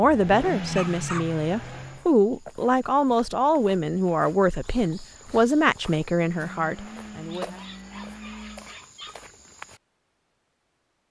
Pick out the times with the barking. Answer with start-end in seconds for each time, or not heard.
0.7-1.4, 7.2-9.2.